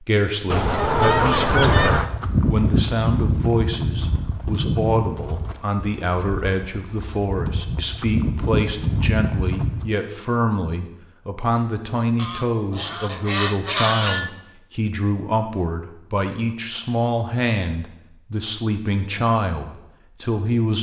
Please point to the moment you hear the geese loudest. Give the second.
1 s.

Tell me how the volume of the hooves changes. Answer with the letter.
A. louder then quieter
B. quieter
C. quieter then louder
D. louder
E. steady
C.